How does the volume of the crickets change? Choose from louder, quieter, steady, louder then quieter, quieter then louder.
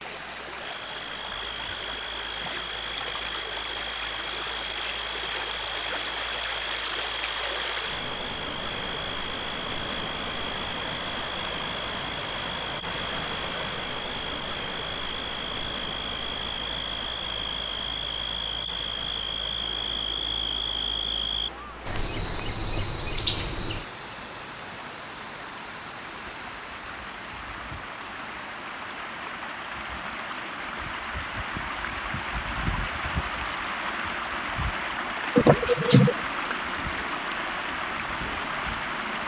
louder then quieter.